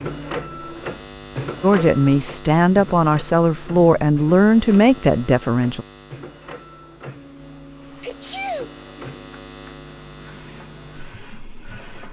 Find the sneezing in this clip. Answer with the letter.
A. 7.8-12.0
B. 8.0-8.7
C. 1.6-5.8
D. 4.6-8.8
B.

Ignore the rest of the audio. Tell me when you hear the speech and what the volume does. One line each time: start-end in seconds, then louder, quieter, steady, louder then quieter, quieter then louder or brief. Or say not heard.
1.6-5.8 steady.